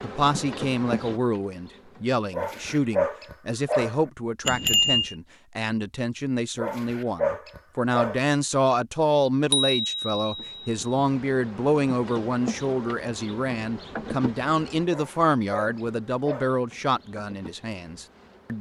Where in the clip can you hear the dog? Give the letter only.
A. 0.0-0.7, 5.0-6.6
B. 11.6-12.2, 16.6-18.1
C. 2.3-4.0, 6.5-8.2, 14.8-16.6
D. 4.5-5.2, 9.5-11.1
C.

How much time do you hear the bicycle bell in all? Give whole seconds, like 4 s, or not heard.
2 s.